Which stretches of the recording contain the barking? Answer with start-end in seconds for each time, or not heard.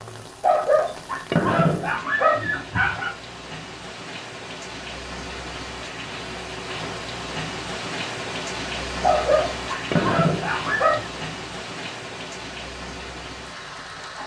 0.4-3.1, 9.0-11.1.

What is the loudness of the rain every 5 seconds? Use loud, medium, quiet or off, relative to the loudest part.
medium, loud, loud.